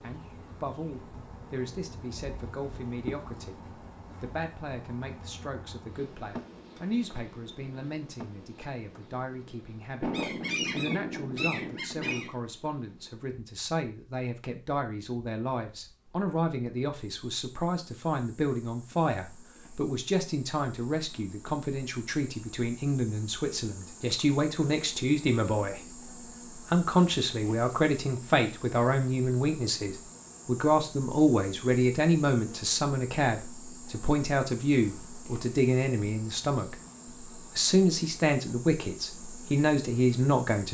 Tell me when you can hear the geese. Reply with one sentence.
The geese can be heard from 10.0 to 12.3 s.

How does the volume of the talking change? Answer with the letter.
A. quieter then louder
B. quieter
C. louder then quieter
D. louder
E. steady
D.